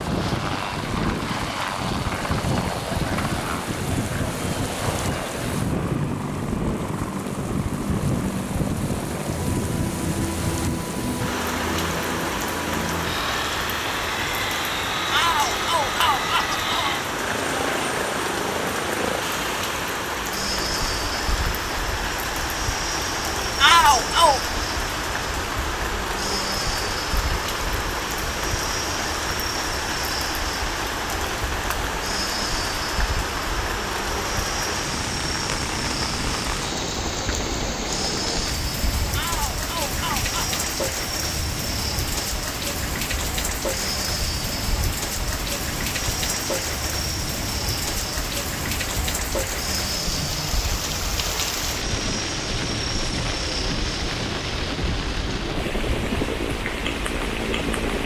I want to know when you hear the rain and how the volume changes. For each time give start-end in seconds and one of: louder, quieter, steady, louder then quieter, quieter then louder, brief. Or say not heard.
0.0-58.0 steady.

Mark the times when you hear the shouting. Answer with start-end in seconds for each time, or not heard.
15.1-17.0, 23.6-24.5, 39.1-40.6.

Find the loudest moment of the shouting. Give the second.
24 s.